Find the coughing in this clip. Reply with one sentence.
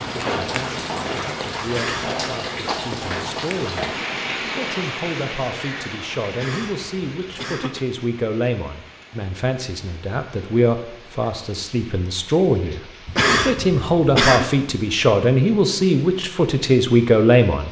You can hear the coughing from 1.6 to 2.2 s, from 6.3 to 7.8 s and from 13.1 to 14.4 s.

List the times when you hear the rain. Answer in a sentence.
The rain can be heard from 0.0 to 17.6 s.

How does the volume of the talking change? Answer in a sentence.
The loudness of the talking goes up.